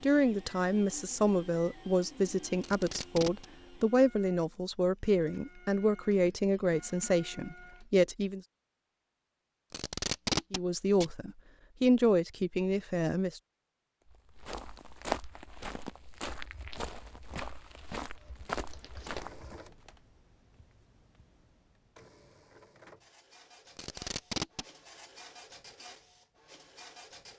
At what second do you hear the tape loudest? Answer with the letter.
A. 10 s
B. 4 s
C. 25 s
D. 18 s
A.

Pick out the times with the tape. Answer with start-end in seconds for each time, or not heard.
2.6-3.5, 9.7-11.1, 23.8-24.6.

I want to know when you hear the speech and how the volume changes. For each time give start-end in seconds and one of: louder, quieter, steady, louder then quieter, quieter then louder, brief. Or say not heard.
0.0-8.4 steady
10.5-13.4 brief.